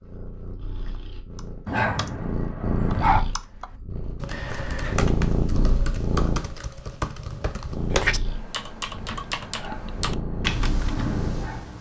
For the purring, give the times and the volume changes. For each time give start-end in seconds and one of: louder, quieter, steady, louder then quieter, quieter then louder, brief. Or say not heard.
0.0-11.6 louder then quieter.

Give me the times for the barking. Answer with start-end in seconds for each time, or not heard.
1.6-3.2, 9.4-11.7.